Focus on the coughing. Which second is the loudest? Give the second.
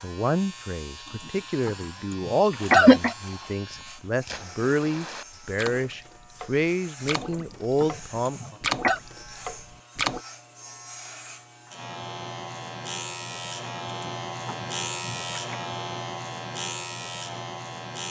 3 s.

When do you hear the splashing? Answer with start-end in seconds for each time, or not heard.
2.5-10.2.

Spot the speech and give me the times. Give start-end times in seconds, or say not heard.
0.0-8.6.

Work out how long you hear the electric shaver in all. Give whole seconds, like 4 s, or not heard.
18 s.